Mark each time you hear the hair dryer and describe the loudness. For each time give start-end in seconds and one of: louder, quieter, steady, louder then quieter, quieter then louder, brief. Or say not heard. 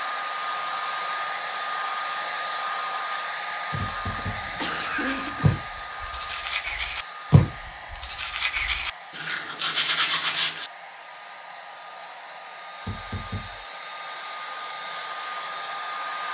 0.0-16.3 quieter then louder.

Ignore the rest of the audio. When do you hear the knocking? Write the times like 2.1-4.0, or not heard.
3.8-4.5, 12.8-13.7.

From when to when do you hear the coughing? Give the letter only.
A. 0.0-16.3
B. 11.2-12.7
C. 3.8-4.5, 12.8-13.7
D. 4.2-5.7
D.